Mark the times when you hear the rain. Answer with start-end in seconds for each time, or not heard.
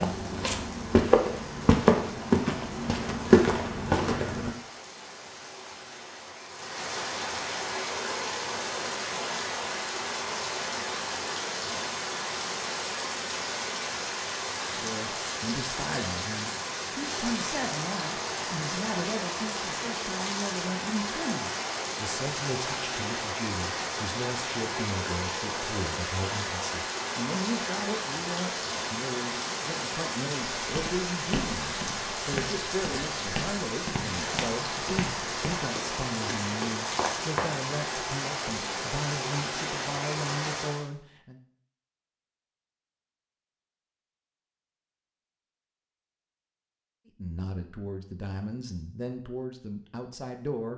0.0-40.9.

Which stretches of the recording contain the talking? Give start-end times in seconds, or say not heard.
14.7-41.4, 47.1-50.7.